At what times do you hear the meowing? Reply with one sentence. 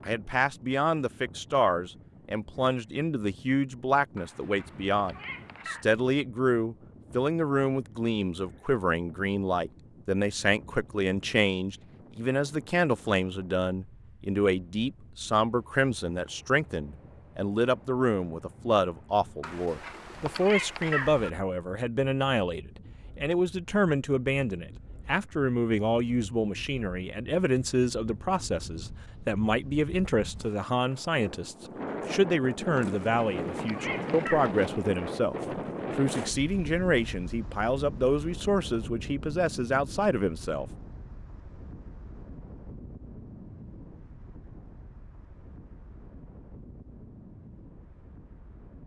The meowing can be heard from 4.2 to 5.8 s, from 19.4 to 21.3 s and from 32.8 to 34.6 s.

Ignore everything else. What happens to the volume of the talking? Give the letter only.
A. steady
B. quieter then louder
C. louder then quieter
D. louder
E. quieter
A.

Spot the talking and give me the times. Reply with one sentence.
The talking can be heard from 0.0 to 35.4 s and from 36.0 to 40.6 s.